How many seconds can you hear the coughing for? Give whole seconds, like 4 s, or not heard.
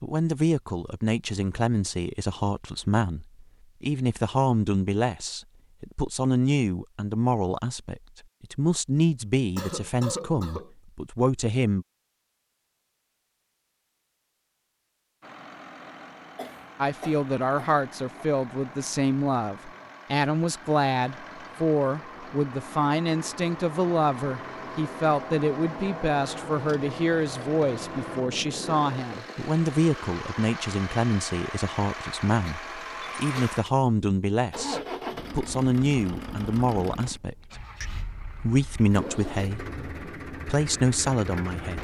4 s.